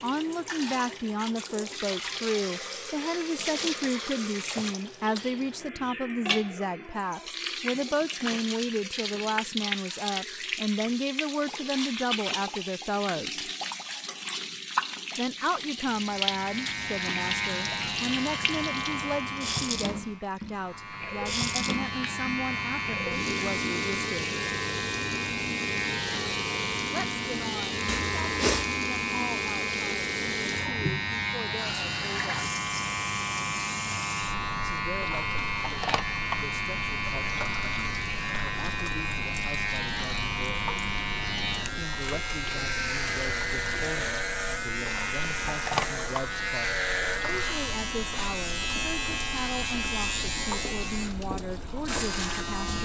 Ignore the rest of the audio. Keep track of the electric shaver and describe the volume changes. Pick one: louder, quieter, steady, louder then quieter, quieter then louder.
steady.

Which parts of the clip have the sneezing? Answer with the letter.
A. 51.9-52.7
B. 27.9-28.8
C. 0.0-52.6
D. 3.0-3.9
B.